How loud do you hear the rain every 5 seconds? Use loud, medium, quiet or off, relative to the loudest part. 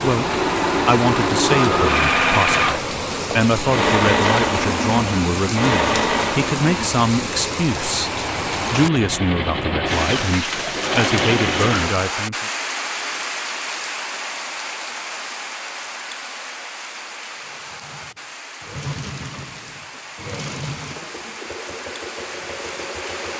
loud, loud, loud, medium, medium.